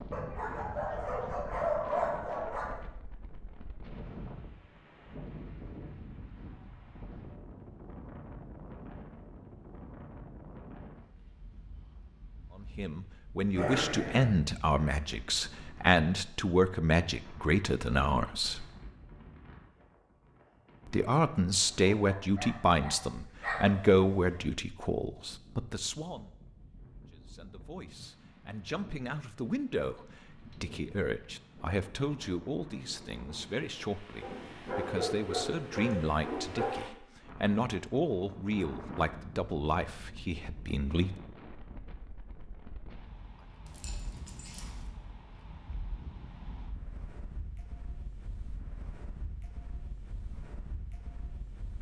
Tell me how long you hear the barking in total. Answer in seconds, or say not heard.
10 s.